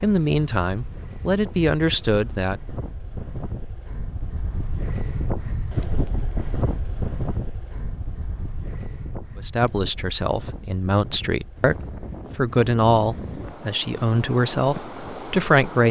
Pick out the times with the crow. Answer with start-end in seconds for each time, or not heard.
not heard.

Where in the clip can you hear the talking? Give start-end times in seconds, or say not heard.
0.0-2.6, 9.3-15.8.